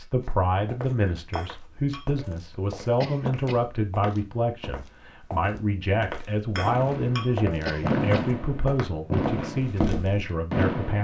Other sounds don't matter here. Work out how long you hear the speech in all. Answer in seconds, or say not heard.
11 s.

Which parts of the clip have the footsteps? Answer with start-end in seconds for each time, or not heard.
0.2-10.3.